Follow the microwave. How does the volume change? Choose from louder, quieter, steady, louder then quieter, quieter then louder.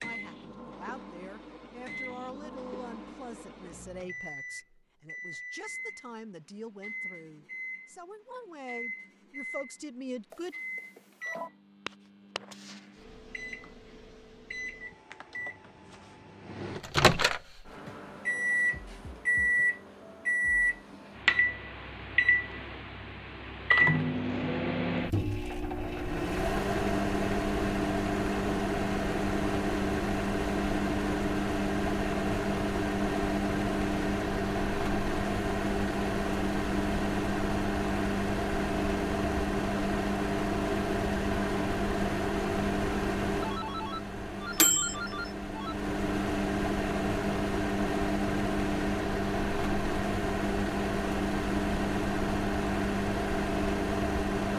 louder.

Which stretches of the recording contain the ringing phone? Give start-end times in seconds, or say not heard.
10.3-11.5, 43.4-45.8.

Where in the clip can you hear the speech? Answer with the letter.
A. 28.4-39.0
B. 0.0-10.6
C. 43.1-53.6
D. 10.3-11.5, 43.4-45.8
B.